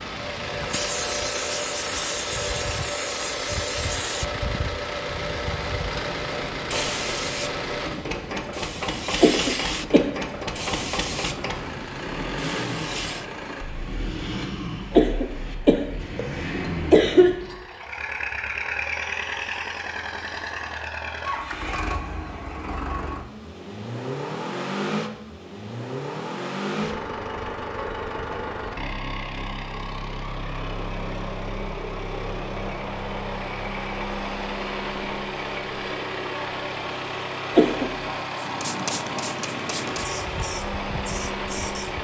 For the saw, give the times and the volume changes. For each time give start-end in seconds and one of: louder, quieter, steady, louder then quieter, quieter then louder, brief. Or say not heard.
not heard.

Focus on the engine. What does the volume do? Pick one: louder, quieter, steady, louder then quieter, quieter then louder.
steady.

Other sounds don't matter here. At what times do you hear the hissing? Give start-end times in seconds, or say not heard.
0.0-13.2, 38.4-41.9.